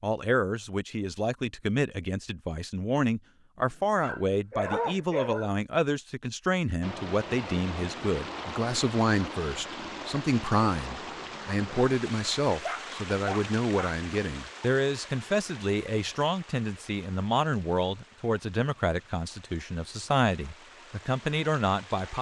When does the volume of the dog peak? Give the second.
5 s.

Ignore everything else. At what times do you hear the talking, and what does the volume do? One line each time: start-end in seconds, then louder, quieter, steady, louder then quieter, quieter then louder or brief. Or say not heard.
0.0-22.1 steady.